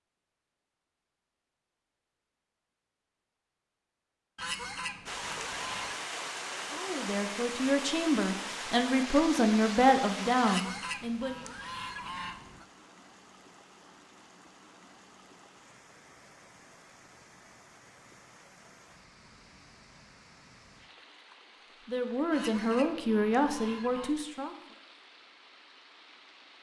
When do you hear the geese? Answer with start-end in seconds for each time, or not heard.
4.3-6.0, 10.4-12.7, 22.3-24.1.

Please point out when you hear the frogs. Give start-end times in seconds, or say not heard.
not heard.